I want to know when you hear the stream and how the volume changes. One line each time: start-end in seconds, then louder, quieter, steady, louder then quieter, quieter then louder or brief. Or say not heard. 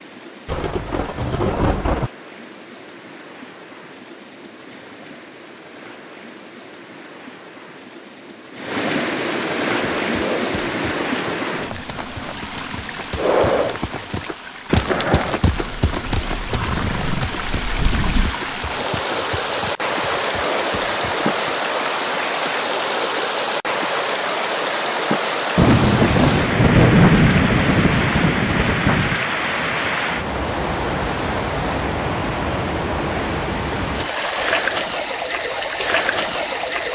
0.0-36.9 louder.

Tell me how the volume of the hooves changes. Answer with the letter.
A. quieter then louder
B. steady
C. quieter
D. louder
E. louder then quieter
E.